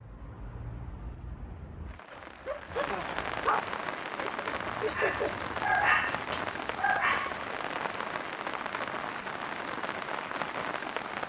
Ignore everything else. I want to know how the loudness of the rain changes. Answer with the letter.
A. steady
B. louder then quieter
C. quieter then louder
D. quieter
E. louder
E.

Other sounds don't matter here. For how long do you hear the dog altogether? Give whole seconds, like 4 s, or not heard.
5 s.